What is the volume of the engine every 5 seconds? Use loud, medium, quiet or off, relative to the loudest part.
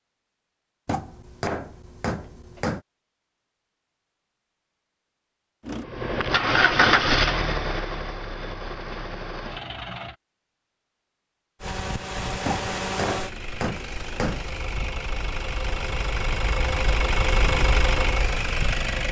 off, loud, medium, loud.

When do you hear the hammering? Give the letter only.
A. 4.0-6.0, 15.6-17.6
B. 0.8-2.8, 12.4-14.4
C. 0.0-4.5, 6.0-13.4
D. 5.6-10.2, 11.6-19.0
B.